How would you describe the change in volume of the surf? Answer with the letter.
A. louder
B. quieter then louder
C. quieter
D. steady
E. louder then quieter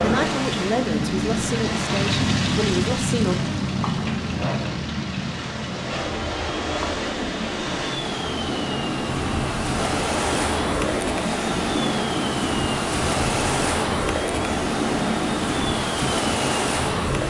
A.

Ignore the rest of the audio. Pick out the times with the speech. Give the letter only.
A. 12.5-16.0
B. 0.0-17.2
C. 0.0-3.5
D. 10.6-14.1
C.